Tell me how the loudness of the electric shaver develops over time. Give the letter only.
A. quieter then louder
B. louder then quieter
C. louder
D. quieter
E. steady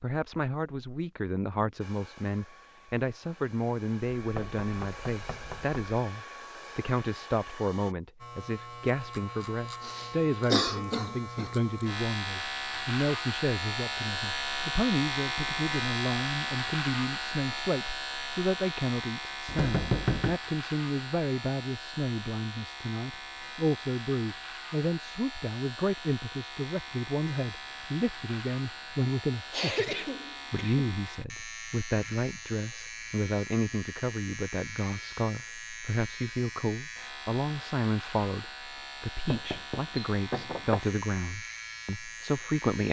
D.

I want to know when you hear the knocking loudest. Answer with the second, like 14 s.
20 s.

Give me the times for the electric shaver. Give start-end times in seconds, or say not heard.
8.2-42.8.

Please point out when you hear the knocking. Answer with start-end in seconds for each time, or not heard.
4.2-5.8, 19.4-20.4, 39.3-40.8.